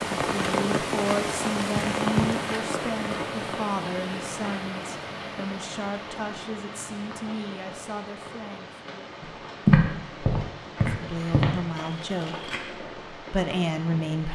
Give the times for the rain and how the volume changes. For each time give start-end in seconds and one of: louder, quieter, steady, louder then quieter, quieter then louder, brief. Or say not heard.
0.0-14.2 quieter.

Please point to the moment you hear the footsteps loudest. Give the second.
10 s.